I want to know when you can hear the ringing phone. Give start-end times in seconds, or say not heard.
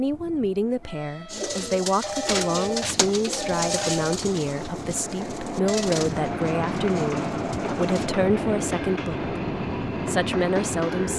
2.0-4.2.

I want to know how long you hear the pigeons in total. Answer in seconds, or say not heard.
7 s.